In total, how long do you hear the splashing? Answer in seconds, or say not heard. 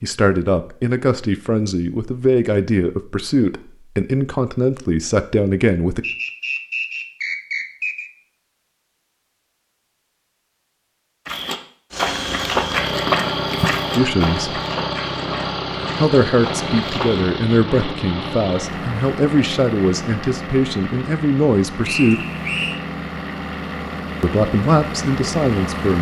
not heard.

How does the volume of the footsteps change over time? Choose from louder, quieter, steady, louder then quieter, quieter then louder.
quieter.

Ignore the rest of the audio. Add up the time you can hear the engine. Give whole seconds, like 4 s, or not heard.
14 s.